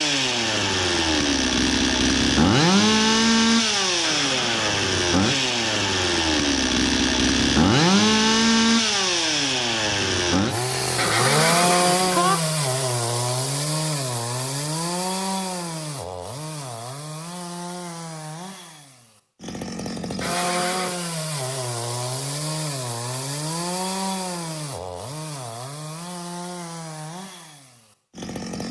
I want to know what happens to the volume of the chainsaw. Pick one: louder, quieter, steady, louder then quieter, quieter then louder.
quieter.